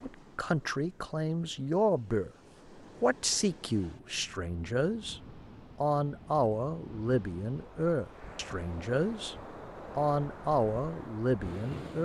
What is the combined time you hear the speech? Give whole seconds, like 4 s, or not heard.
11 s.